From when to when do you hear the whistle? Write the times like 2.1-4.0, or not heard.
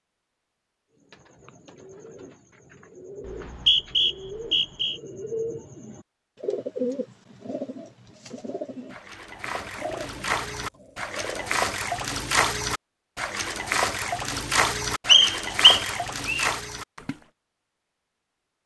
3.2-5.0, 15.1-16.5.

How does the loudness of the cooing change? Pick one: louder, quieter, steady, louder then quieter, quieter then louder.
louder then quieter.